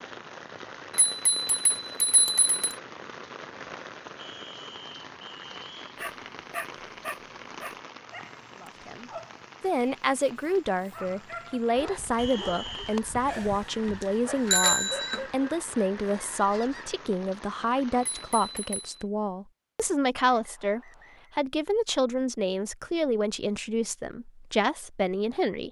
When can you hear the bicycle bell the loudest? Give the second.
15 s.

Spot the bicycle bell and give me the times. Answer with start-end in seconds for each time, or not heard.
0.9-2.8, 13.3-15.2, 18.0-18.9.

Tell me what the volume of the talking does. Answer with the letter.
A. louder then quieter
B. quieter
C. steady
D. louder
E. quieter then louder
C.